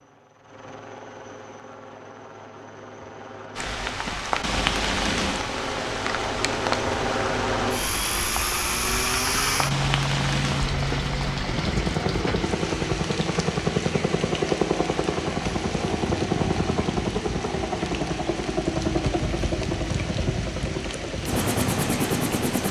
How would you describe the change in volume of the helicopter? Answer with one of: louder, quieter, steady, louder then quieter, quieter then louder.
louder.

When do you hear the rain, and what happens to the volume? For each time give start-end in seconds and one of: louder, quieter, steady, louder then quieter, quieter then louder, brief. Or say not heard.
3.5-22.6 quieter.